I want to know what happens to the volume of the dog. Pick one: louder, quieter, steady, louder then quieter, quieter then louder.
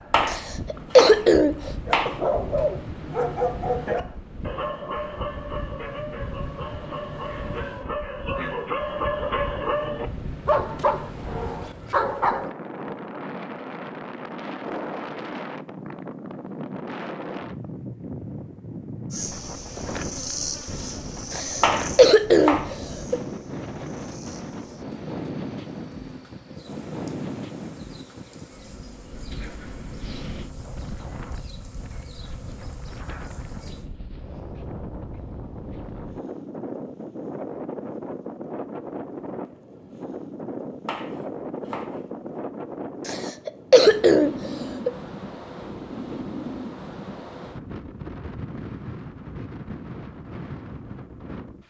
quieter then louder.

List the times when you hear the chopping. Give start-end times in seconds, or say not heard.
0.1-2.1, 21.6-23.2, 40.9-42.0.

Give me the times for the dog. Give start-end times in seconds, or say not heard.
1.9-12.5.